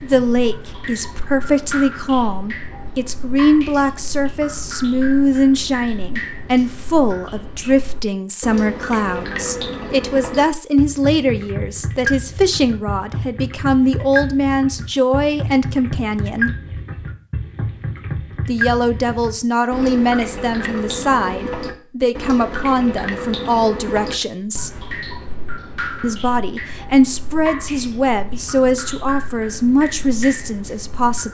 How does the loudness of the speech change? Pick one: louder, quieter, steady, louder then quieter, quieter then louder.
steady.